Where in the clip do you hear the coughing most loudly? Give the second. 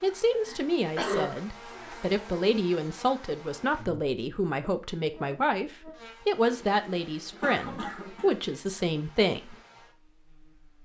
1 s.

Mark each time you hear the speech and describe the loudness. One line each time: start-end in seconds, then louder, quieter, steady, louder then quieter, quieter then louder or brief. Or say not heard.
0.0-9.6 steady.